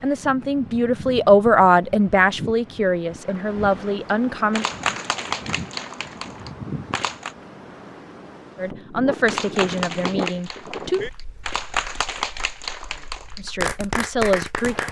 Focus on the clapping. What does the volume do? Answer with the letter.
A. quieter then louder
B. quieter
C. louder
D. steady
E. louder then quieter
A.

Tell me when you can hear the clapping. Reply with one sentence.
You can hear the clapping from 4.0 to 7.3 s and from 9.2 to 14.8 s.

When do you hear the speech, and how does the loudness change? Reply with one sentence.
You can hear the speech from 0.0 to 4.7 s, getting louder then quieter; briefly from 8.6 to 11.0 s; and briefly from 13.3 to 14.8 s.